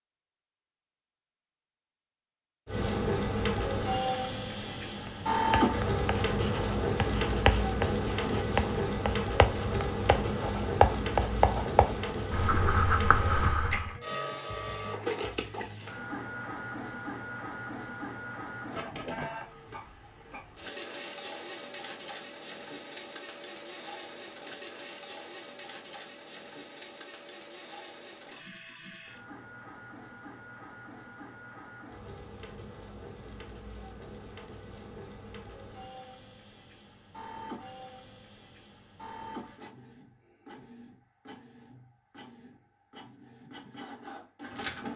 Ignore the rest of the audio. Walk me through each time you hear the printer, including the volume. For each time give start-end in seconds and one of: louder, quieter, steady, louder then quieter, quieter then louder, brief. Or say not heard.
2.6-44.9 quieter.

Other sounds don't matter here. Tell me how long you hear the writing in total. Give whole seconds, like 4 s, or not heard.
9 s.